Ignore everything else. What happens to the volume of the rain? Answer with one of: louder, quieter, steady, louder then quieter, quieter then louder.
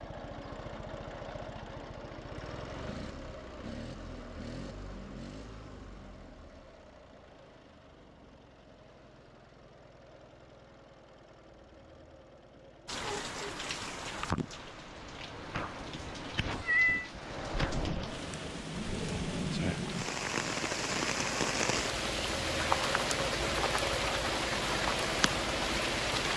louder.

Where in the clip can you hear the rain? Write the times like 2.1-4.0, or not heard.
12.8-26.3.